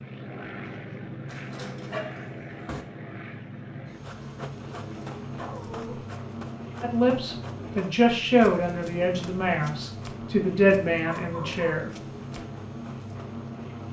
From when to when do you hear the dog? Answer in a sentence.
You can hear the dog from 1.3 to 2.9 s, from 5.3 to 6.0 s and from 11.1 to 11.7 s.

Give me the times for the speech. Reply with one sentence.
You can hear the speech from 6.8 to 11.9 s.